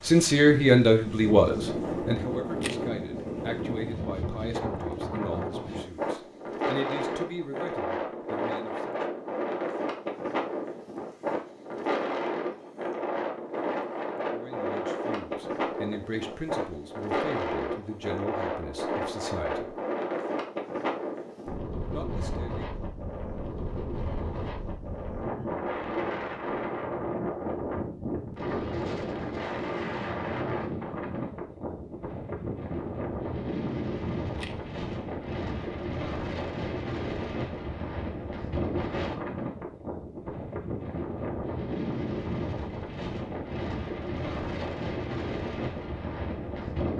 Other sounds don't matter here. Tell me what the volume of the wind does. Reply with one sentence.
The volume of the wind stays about the same.